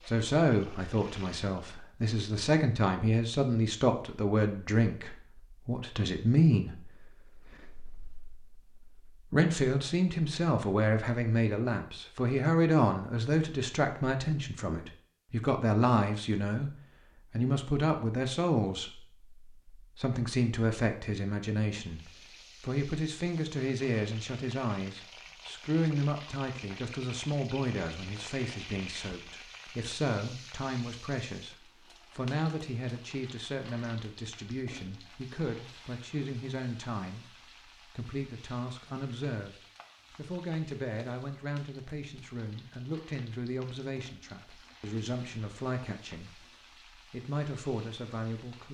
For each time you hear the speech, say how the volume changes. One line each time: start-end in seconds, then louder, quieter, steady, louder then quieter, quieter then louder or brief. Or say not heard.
0.1-48.7 quieter.